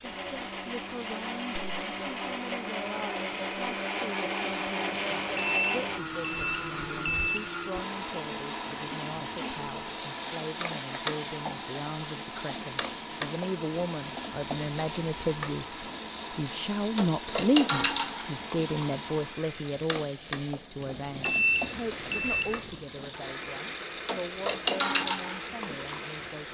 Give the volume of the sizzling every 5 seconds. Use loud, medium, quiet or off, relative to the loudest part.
medium, medium, loud, loud, loud, loud.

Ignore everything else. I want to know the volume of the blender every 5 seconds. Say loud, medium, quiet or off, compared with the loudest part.
loud, loud, medium, medium, medium, medium.